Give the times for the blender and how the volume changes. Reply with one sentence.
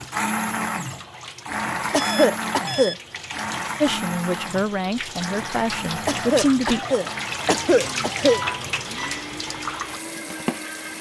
The blender can be heard from 0.0 to 10.9 s, getting quieter.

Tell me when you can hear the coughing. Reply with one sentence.
The coughing can be heard from 1.9 to 3.0 s and from 6.0 to 8.4 s.